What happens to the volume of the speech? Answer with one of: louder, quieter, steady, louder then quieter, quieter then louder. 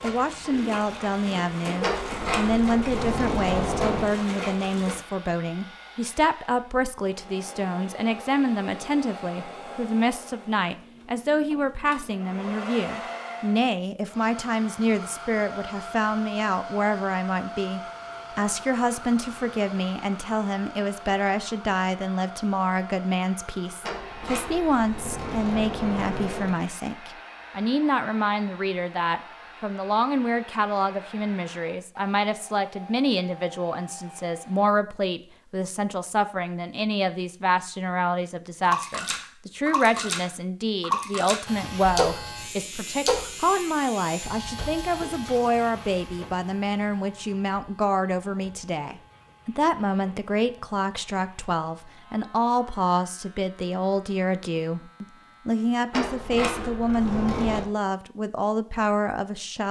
steady.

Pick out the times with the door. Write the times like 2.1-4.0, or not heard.
1.8-4.2, 23.8-26.6, 55.9-57.6.